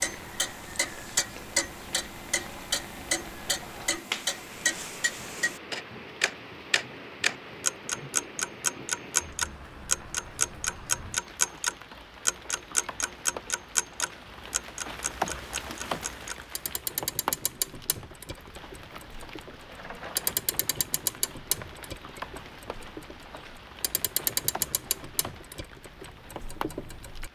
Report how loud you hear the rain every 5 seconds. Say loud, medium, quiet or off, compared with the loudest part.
medium, medium, medium, loud, medium, medium.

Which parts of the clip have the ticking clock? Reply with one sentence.
The ticking clock can be heard from 0.0 to 27.2 s.